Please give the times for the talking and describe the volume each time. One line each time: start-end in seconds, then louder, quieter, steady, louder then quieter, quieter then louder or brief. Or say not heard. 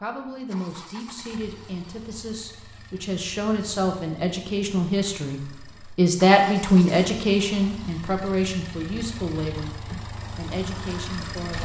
0.0-11.5 louder then quieter.